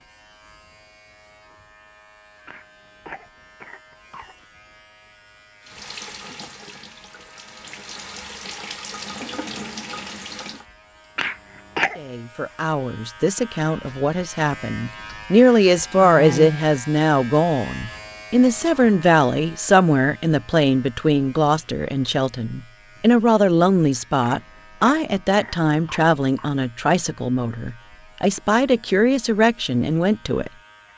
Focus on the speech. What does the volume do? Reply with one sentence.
The volume of the speech stays about the same.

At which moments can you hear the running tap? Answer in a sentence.
You can hear the running tap from 5.6 to 10.7 s.